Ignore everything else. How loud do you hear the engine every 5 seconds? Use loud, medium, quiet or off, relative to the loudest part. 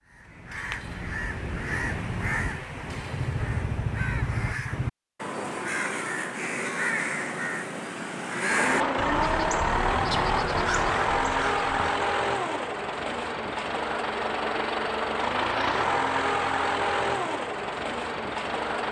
off, loud, loud, loud.